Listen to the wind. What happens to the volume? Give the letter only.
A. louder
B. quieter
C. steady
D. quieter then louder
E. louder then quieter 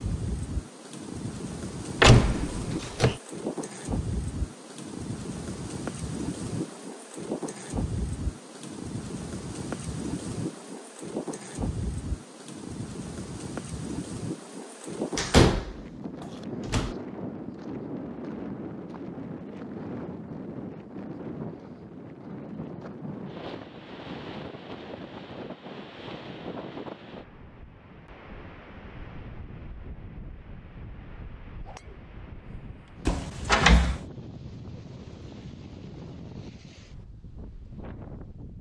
B.